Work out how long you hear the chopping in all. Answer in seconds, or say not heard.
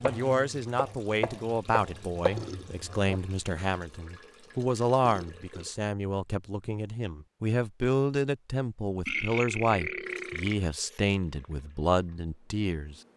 3 s.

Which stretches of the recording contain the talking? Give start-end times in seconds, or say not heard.
0.0-12.9.